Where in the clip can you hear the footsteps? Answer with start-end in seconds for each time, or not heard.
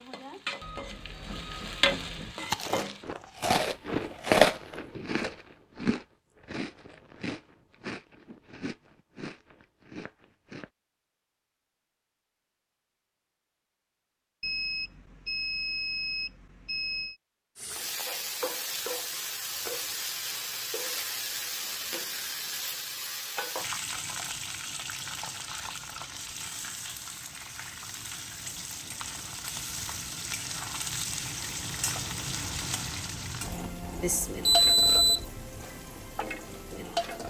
not heard.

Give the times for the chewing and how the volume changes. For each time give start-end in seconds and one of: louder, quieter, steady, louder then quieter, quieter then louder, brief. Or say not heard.
2.4-10.7 louder then quieter.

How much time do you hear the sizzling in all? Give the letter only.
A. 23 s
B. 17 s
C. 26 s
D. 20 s
A.